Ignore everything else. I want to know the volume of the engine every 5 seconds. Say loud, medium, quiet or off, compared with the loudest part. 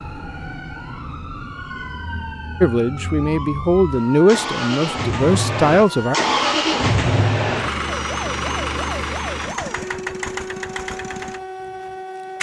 medium, loud, medium.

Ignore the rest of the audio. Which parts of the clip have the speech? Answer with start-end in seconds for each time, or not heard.
2.6-6.2.